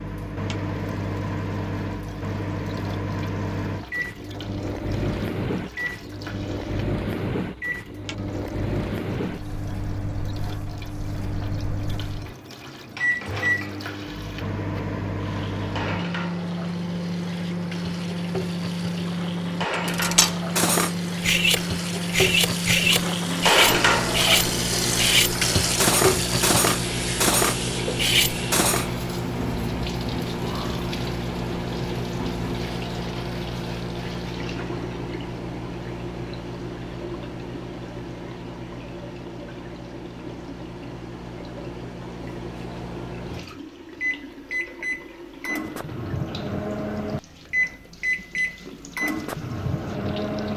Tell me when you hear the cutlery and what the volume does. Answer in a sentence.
You can hear the cutlery from 19.9 to 28.9 s, at a steady volume.